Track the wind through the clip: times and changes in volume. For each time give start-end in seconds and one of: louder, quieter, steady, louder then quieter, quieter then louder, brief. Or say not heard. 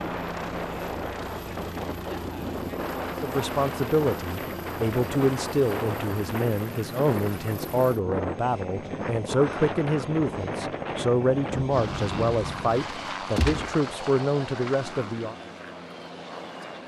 0.0-13.1 steady.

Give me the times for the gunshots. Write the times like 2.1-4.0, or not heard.
13.3-13.8.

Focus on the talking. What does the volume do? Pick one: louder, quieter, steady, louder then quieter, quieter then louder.
steady.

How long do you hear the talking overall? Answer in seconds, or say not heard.
12 s.